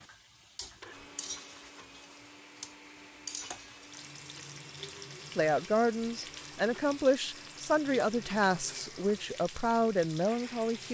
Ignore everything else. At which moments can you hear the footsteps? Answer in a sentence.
The footsteps can't be heard in this clip.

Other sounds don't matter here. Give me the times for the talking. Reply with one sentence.
You can hear the talking from 5.3 to 10.8 s.